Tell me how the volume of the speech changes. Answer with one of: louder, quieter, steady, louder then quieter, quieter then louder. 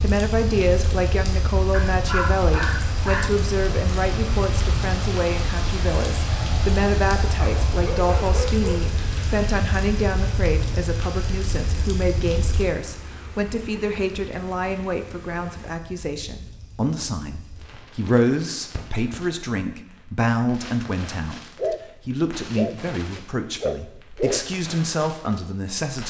steady.